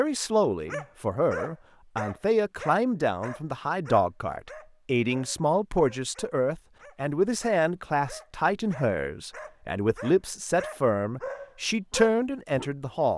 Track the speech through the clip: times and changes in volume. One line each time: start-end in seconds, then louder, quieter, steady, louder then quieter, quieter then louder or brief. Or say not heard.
0.0-13.1 steady.